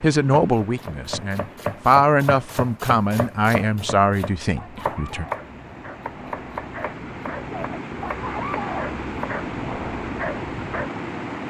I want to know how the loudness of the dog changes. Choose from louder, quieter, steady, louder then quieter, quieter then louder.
louder.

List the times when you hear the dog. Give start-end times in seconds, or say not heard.
4.5-10.9.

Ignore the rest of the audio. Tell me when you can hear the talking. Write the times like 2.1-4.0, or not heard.
0.0-5.2.